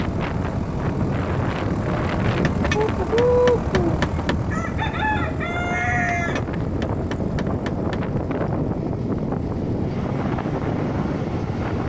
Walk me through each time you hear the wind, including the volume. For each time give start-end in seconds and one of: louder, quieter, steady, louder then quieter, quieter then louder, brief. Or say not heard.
0.0-11.8 steady.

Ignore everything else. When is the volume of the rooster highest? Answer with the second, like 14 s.
3 s.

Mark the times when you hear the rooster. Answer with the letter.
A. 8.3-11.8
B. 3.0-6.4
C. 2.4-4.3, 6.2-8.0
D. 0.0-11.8
B.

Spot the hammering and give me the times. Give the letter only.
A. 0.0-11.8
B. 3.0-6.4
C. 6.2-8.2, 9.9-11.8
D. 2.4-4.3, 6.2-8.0
D.